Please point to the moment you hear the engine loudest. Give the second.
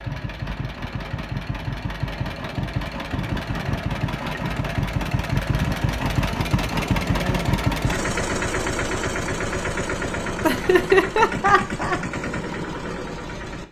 7 s.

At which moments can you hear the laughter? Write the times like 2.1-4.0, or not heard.
10.4-12.0.